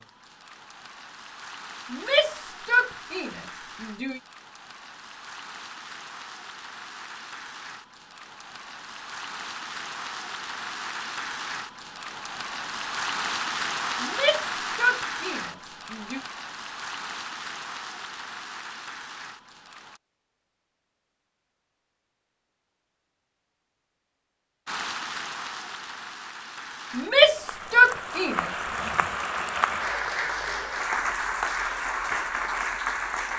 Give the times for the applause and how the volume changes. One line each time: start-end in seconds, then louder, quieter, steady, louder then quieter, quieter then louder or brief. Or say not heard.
0.0-20.0 louder then quieter
24.6-33.3 louder.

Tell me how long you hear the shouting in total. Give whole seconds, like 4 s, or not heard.
6 s.